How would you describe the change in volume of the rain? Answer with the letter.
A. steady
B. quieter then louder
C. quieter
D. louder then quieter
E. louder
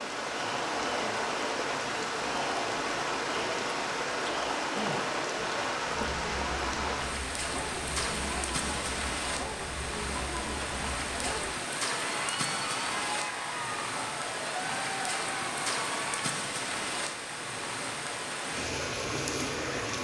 A.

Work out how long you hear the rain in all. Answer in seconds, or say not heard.
20 s.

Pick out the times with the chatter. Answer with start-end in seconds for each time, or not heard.
0.0-16.4.